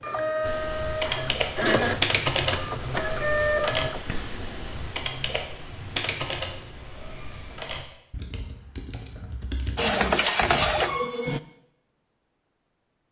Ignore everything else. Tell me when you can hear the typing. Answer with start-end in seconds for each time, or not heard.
0.4-10.9.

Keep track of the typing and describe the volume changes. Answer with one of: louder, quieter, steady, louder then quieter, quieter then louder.
quieter.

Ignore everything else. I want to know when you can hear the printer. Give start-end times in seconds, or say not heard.
0.0-4.5, 9.8-11.4.